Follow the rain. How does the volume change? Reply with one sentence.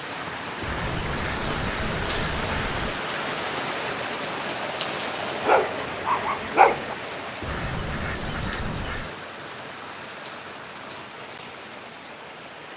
The volume of the rain goes down.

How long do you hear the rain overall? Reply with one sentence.
You can hear the rain for 13 seconds altogether.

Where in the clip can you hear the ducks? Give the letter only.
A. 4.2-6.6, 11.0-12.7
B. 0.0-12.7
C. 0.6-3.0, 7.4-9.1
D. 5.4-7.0
C.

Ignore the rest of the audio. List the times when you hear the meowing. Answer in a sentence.
You can't hear the meowing here.